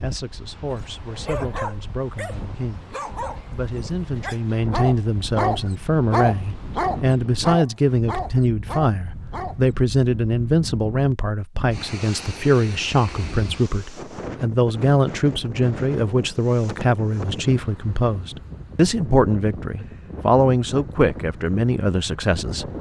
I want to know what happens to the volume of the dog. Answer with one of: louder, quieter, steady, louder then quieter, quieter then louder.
louder then quieter.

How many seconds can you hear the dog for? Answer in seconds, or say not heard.
9 s.